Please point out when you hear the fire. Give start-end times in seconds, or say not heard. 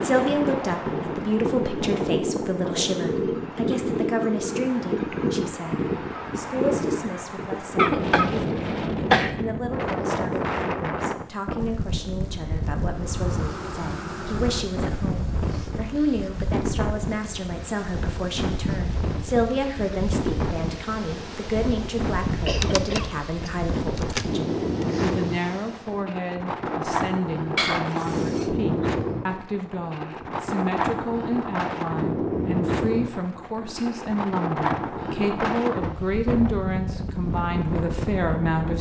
not heard.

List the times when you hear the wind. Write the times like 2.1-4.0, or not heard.
0.0-38.7.